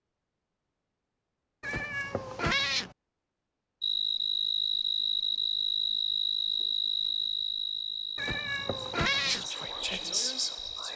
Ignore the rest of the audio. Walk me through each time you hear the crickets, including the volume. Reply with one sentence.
You can hear the crickets from 3.8 to 10.9 s, getting quieter.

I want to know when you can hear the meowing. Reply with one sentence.
You can hear the meowing from 1.6 to 3.0 s and from 8.2 to 9.5 s.